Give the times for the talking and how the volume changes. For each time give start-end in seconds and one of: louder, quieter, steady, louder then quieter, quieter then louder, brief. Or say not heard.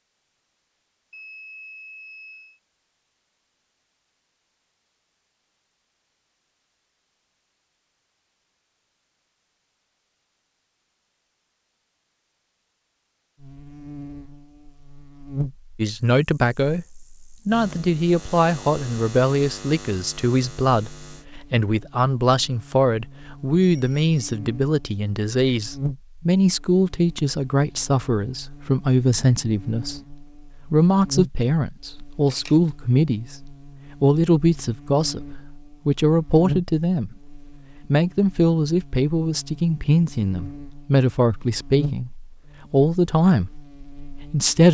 15.8-43.5 steady
44.1-44.6 brief.